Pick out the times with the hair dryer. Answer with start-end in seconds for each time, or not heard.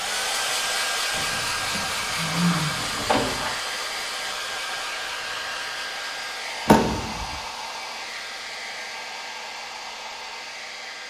0.0-11.0.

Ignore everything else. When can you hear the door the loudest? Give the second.
7 s.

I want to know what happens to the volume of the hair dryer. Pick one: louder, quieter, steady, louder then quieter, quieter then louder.
quieter.